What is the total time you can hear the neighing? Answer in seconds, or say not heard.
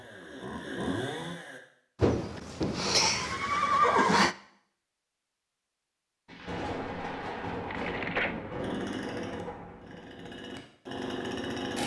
3 s.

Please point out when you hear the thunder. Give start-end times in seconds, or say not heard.
6.2-10.3.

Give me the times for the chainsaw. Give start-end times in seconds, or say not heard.
0.0-1.6, 8.6-11.8.